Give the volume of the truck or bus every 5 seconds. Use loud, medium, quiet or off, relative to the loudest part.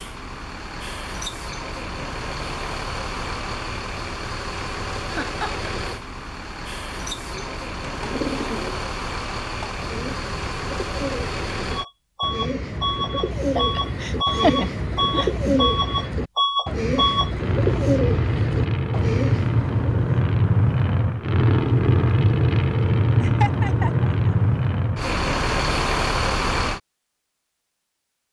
medium, medium, medium, loud, loud, loud.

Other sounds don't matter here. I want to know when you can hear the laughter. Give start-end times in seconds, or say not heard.
5.1-5.7, 13.6-15.7, 23.2-24.4.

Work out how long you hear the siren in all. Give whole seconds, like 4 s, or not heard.
not heard.